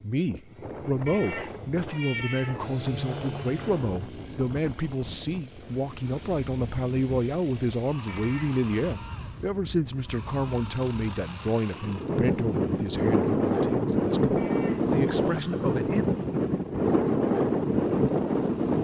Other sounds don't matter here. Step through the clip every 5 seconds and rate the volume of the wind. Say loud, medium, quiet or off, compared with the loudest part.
quiet, quiet, loud, loud.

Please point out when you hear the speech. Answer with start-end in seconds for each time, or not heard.
0.0-16.1.